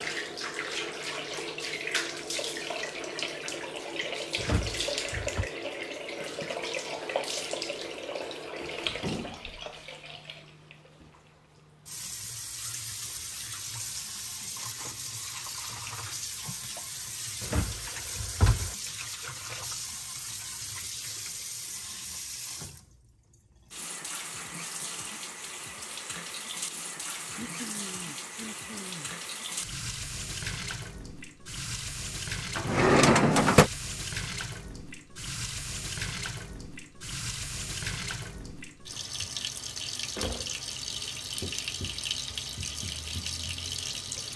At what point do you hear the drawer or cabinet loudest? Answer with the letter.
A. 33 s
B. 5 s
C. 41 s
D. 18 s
A.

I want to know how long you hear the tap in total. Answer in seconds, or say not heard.
44 s.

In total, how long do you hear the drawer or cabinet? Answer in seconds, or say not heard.
4 s.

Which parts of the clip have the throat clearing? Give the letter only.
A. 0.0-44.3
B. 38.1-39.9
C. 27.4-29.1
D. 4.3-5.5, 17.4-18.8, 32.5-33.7
C.